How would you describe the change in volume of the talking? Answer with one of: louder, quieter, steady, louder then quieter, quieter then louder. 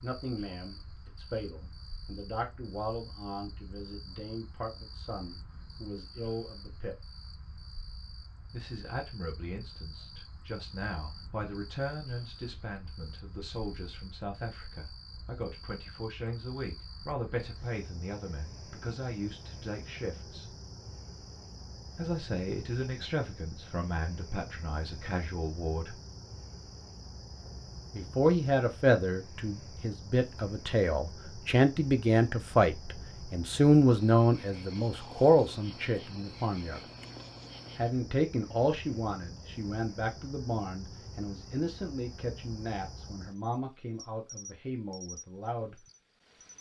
louder then quieter.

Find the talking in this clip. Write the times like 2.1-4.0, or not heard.
0.0-7.0, 8.5-20.4, 21.9-25.9, 27.9-36.8, 37.8-45.8.